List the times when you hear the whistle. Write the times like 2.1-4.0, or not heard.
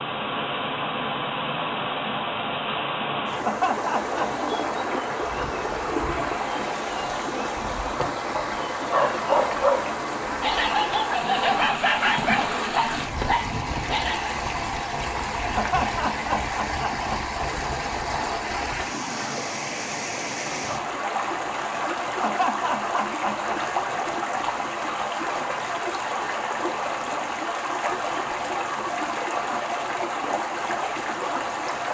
not heard.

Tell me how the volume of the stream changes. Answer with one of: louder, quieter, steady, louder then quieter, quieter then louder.
steady.